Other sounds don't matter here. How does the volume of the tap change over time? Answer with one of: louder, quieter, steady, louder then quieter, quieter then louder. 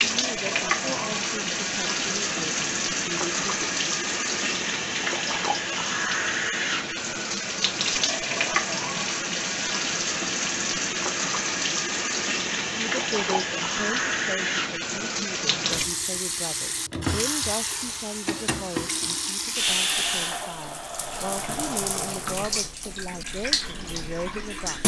steady.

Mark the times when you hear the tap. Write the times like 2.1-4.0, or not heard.
0.0-24.8.